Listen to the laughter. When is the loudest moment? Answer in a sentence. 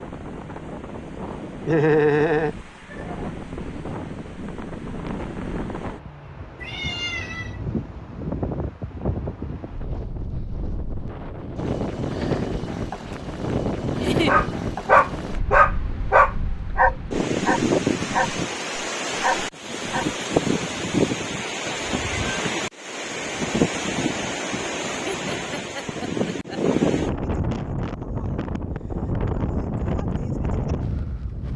The loudest moment of the laughter is at 2 seconds.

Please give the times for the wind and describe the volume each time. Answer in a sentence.
You can hear the wind from 0.0 to 31.5 s, getting louder.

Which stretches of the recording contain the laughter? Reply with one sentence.
The laughter can be heard from 1.6 to 3.2 s, from 13.9 to 14.3 s and from 25.1 to 26.6 s.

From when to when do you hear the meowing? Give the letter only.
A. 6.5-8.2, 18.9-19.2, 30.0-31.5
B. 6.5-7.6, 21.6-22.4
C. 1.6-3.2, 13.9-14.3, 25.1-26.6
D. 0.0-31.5
B.